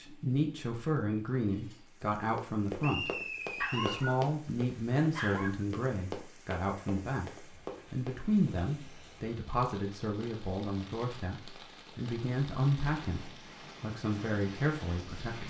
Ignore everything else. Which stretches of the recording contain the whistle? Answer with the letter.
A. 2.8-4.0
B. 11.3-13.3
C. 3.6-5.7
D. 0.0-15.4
A.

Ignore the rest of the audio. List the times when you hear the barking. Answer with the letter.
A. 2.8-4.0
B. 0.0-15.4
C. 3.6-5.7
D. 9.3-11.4
C.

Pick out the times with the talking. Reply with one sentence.
You can hear the talking from 0.0 to 15.4 s.